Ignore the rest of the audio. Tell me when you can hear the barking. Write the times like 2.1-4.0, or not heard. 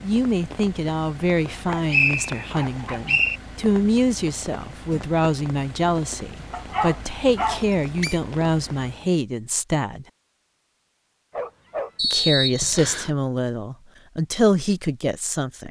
1.7-3.2, 6.5-7.7, 11.3-11.9.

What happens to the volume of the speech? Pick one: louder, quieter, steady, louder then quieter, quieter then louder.
steady.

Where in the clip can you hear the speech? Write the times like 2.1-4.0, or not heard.
0.0-10.1, 12.0-15.6.